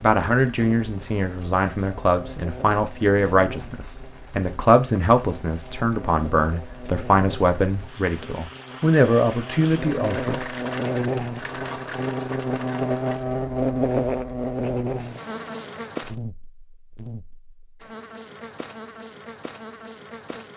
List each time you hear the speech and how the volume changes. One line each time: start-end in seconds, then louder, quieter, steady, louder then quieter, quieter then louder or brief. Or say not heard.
0.0-10.4 steady.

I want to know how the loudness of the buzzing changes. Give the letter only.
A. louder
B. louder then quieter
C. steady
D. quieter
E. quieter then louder
B.